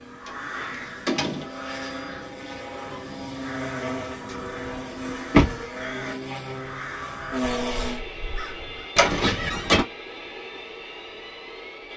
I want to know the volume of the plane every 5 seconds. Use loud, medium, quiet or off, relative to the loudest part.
loud, loud, medium.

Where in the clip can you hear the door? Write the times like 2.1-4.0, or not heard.
0.2-1.5, 4.2-5.7, 8.9-9.8.